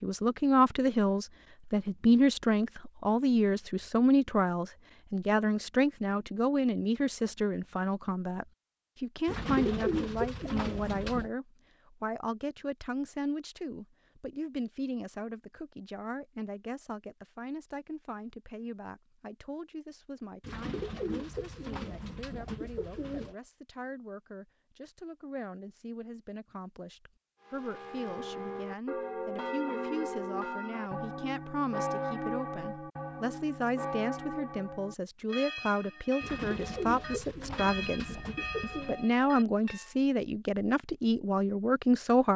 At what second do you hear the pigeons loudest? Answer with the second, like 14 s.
10 s.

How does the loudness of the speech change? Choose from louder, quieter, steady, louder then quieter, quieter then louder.
quieter then louder.